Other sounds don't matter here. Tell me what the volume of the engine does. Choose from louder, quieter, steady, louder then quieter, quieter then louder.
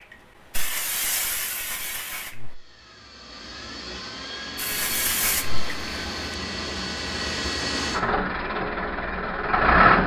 louder.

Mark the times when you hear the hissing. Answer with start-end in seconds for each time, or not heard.
0.1-2.5, 4.5-6.0.